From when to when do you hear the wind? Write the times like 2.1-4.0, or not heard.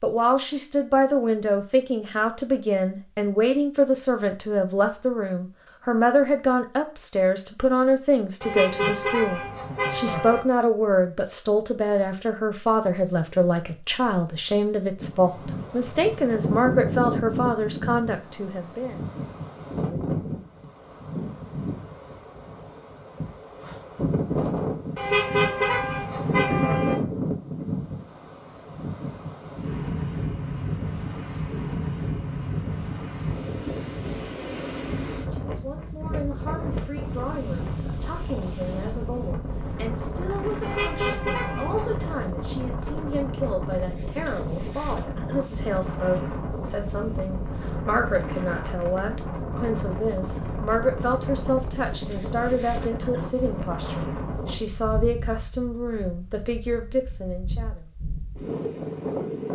14.9-59.5.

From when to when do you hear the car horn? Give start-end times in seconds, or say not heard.
8.4-10.4, 24.9-26.9, 40.6-42.0.